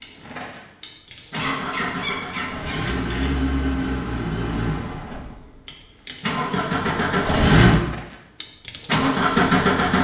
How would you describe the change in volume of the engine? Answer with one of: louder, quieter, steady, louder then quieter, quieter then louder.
louder.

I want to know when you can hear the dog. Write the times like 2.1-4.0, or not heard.
1.4-2.8.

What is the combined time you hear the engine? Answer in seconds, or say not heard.
10 s.